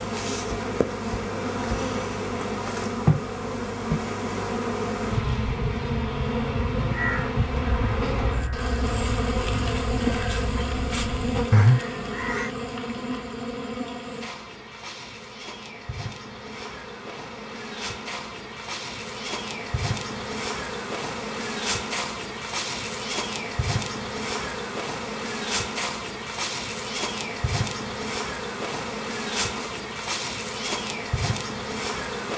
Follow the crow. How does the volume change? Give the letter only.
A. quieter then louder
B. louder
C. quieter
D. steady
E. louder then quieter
B.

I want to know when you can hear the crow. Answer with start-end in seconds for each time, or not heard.
6.8-12.5.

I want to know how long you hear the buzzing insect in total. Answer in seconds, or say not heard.
32 s.